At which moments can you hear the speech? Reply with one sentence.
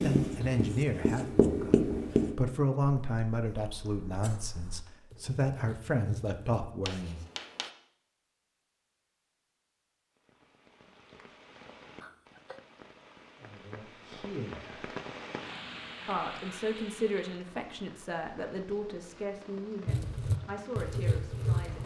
The speech can be heard from 0.0 to 7.2 s, from 13.3 to 14.9 s and from 16.1 to 21.8 s.